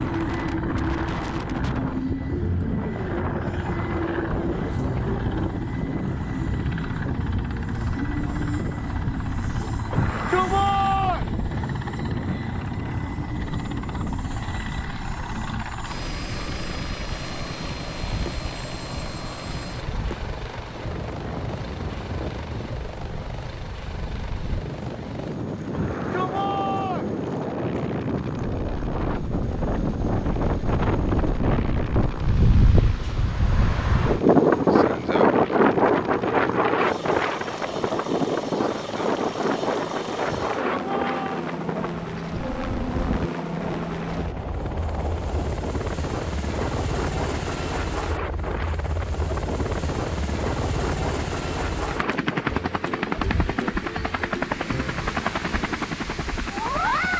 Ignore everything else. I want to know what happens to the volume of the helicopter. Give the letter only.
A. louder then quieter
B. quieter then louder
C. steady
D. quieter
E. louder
B.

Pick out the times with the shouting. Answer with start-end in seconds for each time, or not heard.
9.9-11.3, 25.7-27.1, 40.2-41.5.